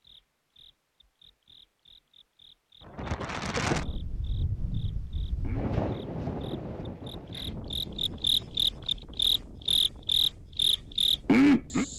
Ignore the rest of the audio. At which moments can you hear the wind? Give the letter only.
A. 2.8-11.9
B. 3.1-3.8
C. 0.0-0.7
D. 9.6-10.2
A.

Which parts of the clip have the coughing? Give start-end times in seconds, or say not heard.
3.1-3.8.